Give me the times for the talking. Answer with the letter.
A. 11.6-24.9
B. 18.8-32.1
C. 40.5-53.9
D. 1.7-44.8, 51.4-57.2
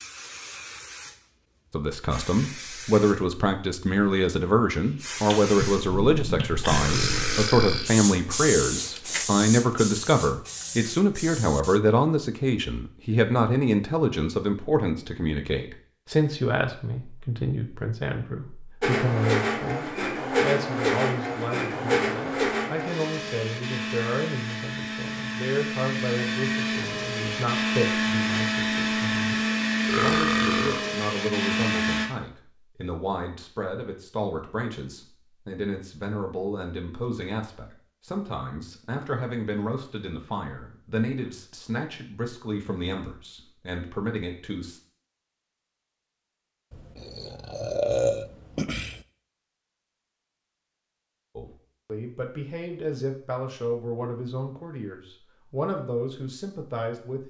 D.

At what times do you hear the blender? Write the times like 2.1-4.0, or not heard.
18.8-32.1.